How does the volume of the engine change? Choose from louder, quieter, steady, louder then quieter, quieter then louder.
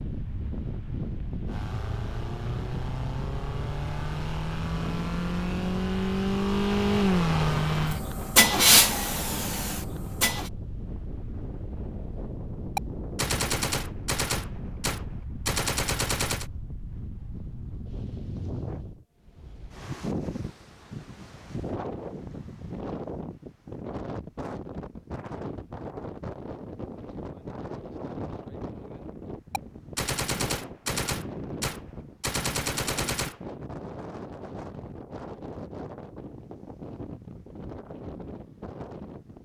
louder.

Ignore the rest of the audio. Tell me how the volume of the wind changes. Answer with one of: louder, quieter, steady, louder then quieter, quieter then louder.
steady.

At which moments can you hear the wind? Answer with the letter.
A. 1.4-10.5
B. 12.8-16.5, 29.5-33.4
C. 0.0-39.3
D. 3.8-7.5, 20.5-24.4
C.